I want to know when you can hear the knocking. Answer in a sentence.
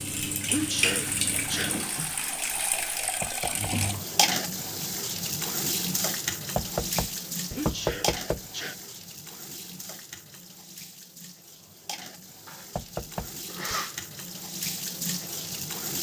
The knocking can be heard from 3.2 to 3.7 s, from 6.5 to 8.4 s and from 12.8 to 13.8 s.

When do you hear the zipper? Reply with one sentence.
The zipper can't be heard in this clip.